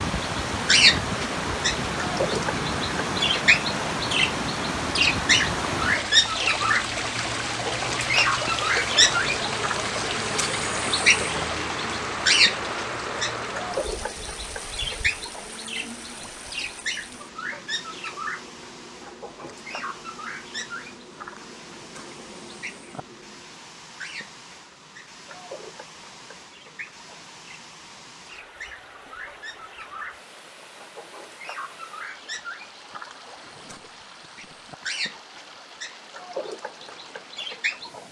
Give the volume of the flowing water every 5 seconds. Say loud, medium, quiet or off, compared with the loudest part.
loud, loud, loud, quiet, quiet, quiet, quiet, quiet.